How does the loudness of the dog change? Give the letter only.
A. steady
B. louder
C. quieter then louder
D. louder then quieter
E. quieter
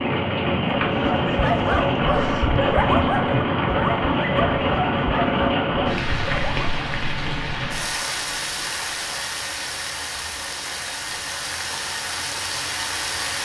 E.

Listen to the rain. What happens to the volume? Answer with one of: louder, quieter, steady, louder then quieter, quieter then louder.
quieter.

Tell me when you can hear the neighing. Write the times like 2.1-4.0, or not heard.
not heard.